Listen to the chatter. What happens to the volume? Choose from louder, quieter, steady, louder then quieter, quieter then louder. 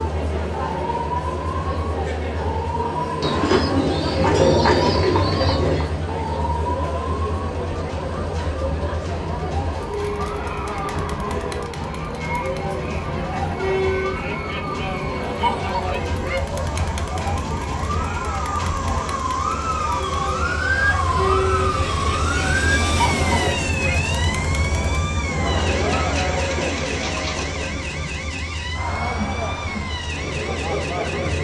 steady.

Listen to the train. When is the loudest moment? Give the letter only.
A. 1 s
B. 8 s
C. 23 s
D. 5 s
C.